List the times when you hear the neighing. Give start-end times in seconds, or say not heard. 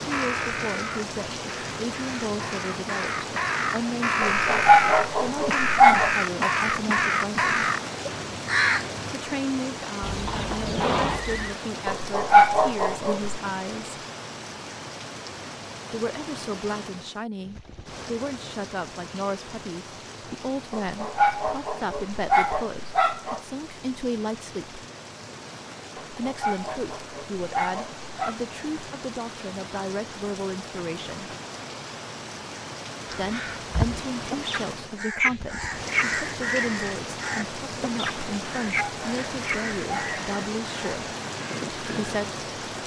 10.0-11.6.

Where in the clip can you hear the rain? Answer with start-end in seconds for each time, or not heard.
0.0-42.8.